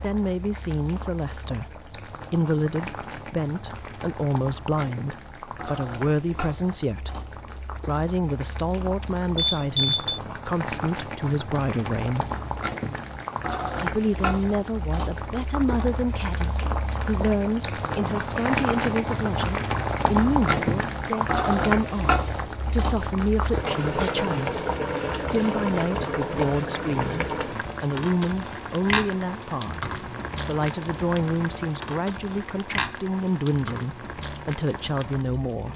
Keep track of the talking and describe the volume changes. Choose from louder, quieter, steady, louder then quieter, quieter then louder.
steady.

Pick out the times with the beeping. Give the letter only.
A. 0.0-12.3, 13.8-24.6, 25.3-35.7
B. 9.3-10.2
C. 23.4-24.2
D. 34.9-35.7
B.